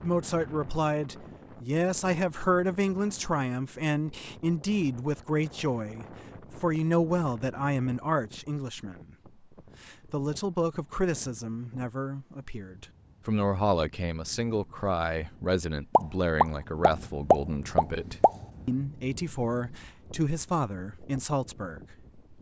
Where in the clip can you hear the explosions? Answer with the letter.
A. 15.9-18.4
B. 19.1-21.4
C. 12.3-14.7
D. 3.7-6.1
A.